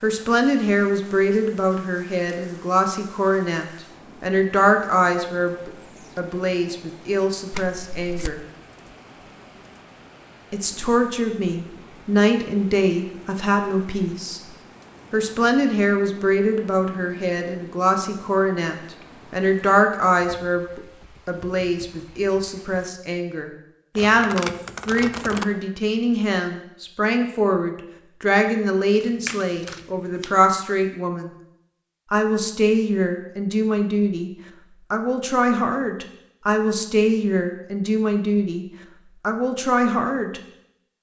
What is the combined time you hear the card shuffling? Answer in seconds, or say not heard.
4 s.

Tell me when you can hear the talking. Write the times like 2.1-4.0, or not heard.
0.0-8.4, 10.5-31.3, 32.1-34.3, 34.9-40.4.